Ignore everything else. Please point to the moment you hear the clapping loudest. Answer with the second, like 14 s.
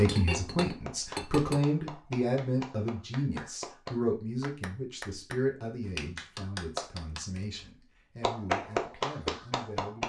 9 s.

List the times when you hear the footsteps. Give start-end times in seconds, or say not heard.
not heard.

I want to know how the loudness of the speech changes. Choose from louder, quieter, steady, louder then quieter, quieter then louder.
quieter.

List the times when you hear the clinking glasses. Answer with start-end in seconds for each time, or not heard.
0.1-1.6.